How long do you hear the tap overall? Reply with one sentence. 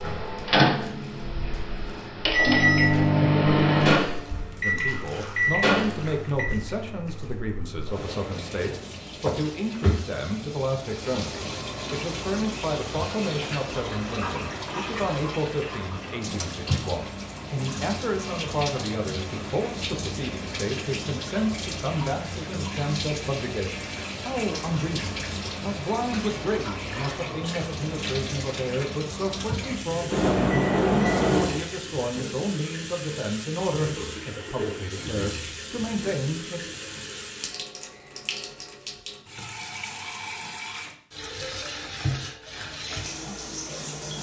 The tap can be heard for 44 seconds in total.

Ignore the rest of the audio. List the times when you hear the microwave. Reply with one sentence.
You can hear the microwave from 0.0 to 6.5 s and from 30.1 to 31.8 s.